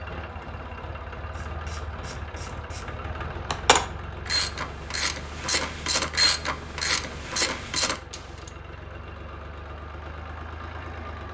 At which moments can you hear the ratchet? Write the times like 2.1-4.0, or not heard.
1.4-8.2.